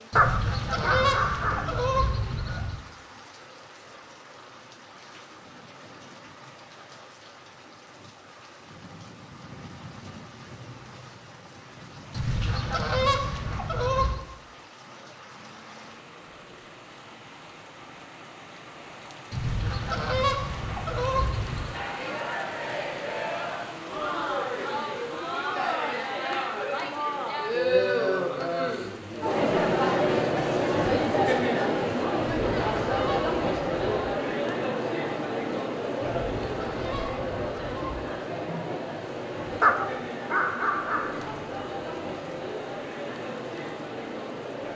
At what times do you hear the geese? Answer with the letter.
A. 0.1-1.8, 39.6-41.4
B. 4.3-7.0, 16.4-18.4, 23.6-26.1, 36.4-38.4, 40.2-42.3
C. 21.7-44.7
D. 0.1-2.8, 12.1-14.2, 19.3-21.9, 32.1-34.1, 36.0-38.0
D.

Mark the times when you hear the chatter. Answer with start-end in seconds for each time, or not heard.
21.7-44.7.